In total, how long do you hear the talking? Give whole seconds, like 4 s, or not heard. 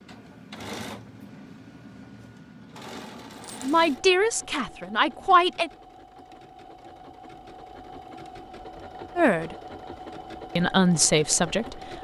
4 s.